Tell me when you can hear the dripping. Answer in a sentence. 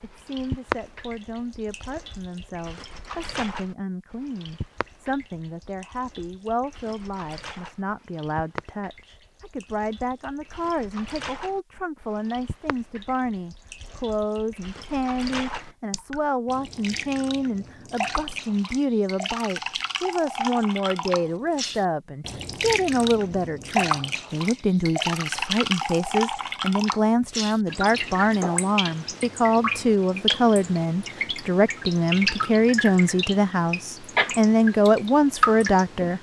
You can hear the dripping from 0.0 to 36.1 s.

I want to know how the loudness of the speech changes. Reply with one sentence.
The volume of the speech goes up.